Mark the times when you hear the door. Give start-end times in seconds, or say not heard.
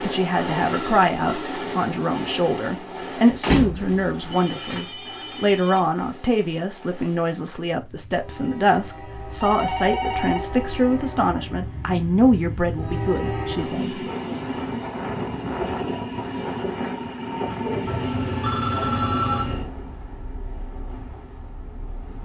3.3-4.2.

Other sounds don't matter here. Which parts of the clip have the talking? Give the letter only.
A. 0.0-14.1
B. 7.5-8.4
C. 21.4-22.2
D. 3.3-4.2
A.